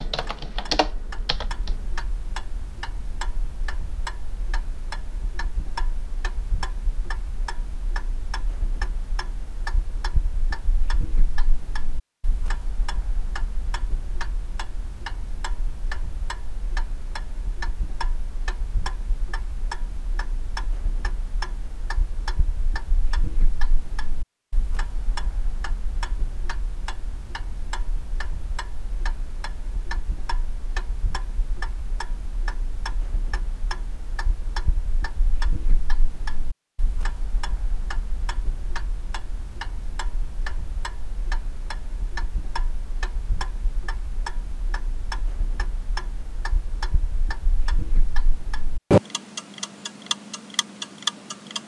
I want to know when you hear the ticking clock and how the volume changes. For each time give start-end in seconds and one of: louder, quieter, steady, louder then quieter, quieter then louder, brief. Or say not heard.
0.1-51.6 louder.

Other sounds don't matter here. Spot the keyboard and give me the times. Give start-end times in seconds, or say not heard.
0.0-1.9.